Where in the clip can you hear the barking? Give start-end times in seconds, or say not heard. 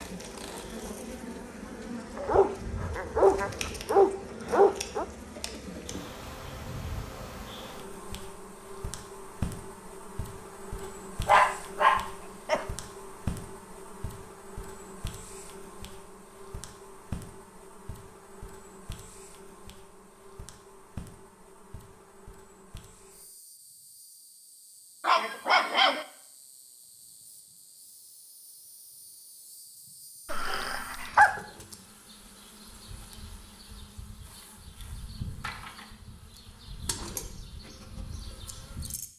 2.1-5.0, 10.8-12.7, 25.0-26.1, 30.3-31.4.